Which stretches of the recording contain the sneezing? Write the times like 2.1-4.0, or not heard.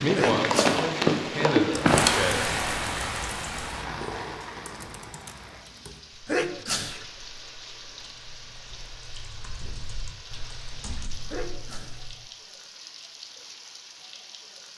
0.1-0.8, 6.2-7.0, 11.3-12.1.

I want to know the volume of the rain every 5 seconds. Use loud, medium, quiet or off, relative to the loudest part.
loud, quiet, quiet.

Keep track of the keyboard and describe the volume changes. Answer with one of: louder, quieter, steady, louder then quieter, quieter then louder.
quieter then louder.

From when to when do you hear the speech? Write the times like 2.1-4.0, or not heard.
0.0-2.5.